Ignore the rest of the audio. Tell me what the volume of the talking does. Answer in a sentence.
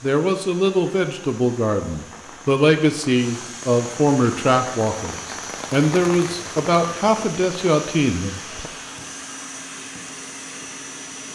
The loudness of the talking stays about the same.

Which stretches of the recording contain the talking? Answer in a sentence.
The talking can be heard from 0.0 to 8.7 s.